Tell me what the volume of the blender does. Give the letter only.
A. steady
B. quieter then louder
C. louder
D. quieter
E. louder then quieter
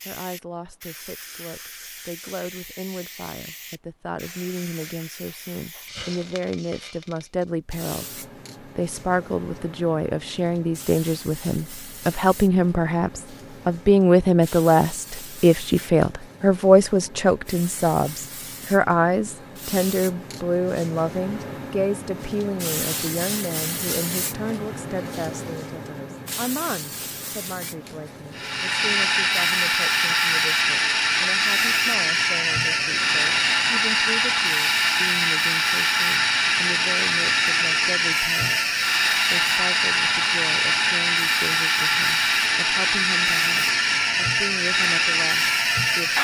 A.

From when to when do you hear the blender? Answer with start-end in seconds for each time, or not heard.
28.4-46.1.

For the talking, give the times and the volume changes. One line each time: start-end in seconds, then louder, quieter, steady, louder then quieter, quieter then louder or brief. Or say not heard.
0.1-46.1 louder then quieter.